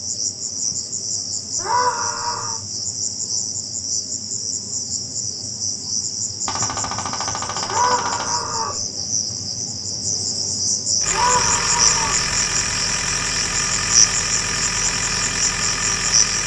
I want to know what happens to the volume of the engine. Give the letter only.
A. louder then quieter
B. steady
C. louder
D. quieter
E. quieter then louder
B.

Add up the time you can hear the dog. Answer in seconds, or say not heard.
not heard.